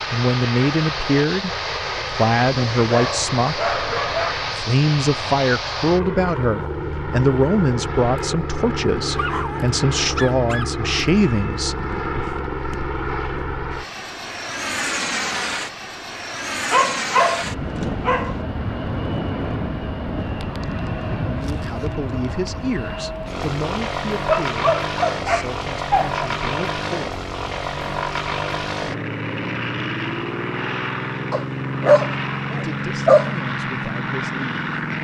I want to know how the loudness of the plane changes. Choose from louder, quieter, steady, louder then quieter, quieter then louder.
steady.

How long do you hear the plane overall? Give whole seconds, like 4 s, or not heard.
35 s.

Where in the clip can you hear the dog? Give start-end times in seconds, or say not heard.
2.8-4.3, 9.2-10.7, 16.7-18.4, 24.2-26.1, 31.3-33.3.